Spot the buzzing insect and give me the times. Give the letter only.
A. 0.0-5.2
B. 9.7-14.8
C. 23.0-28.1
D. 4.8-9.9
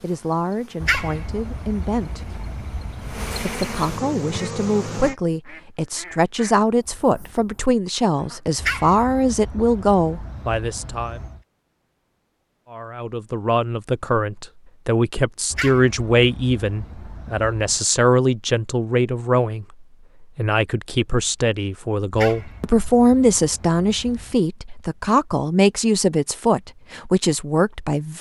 A.